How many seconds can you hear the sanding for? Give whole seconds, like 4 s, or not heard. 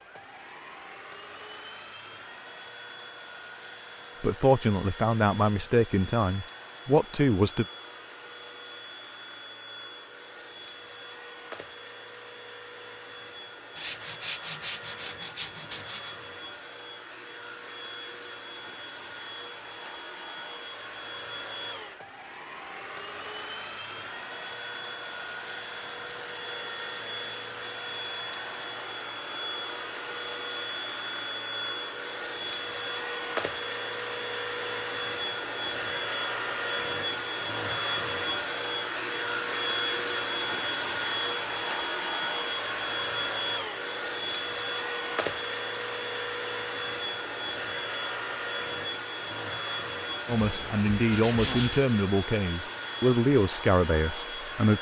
4 s.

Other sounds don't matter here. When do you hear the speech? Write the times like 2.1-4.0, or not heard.
4.2-7.7, 50.2-54.7.